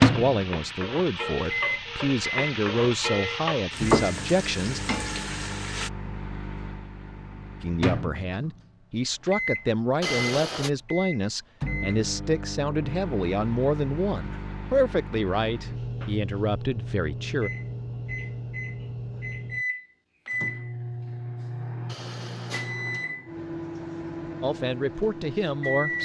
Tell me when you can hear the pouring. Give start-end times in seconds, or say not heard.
10.0-10.7, 21.9-22.8.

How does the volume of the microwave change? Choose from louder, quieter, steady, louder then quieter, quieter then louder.
steady.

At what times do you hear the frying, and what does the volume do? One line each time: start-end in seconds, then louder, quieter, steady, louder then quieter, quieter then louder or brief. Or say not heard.
0.0-5.9 louder then quieter.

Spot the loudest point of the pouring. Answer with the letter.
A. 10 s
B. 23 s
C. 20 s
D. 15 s
A.